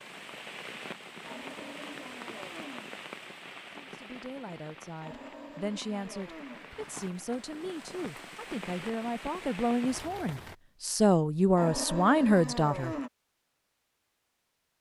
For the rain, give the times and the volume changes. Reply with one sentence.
The rain can be heard from 0.0 to 10.6 s, getting quieter then louder.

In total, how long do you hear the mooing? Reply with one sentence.
You can hear the mooing for 5 seconds altogether.